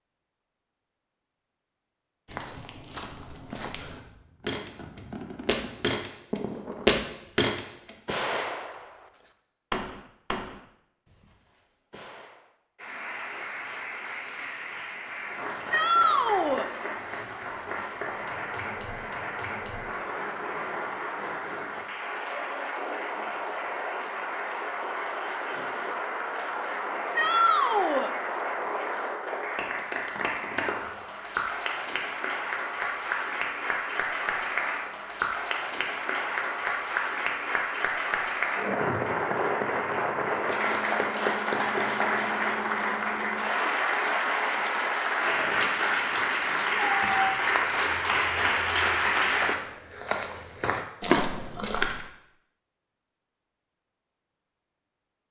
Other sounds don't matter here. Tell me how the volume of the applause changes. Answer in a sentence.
The volume of the applause goes up.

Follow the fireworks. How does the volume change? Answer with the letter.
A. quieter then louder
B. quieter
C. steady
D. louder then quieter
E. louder
D.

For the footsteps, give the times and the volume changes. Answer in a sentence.
The footsteps can be heard from 2.2 to 8.0 s, getting louder; and from 47.2 to 52.0 s, getting louder.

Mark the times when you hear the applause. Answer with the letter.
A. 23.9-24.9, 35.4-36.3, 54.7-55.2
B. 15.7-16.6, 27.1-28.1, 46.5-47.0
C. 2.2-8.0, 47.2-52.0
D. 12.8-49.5
D.